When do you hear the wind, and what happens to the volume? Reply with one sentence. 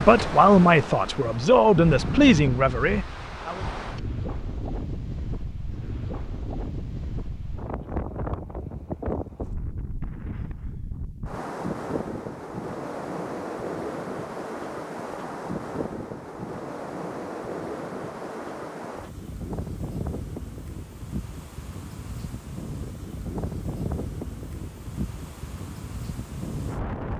The wind can be heard from 0.0 to 27.1 s, at a steady volume.